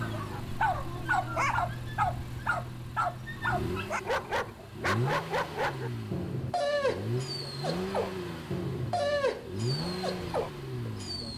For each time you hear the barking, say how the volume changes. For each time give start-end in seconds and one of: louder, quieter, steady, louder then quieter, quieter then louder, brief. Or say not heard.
0.0-11.3 steady.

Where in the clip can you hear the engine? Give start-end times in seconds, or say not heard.
0.0-11.3.